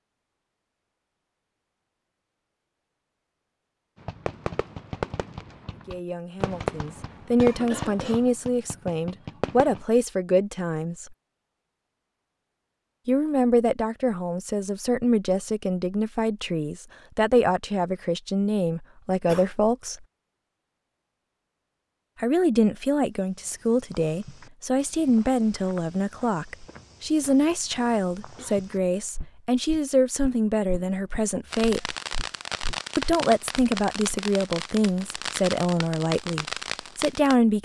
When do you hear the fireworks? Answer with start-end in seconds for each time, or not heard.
4.0-9.8, 31.5-37.4.